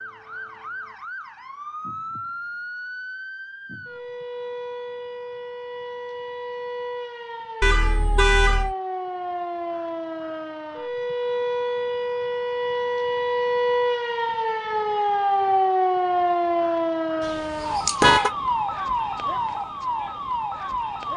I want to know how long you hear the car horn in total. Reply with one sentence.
You can hear the car horn for 2 seconds altogether.